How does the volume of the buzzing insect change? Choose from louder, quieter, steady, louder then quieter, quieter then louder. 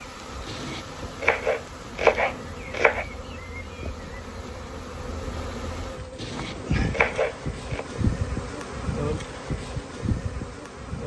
louder.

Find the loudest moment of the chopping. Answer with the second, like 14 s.
2 s.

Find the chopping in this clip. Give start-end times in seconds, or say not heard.
0.5-3.0, 6.2-7.8.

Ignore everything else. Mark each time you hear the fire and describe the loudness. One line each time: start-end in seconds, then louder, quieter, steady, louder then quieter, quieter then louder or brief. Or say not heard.
not heard.